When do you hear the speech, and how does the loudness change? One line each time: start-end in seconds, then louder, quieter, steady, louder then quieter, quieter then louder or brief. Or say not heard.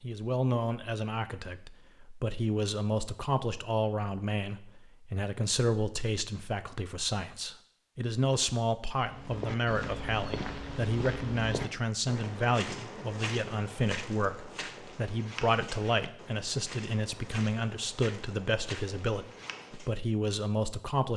0.0-21.1 steady.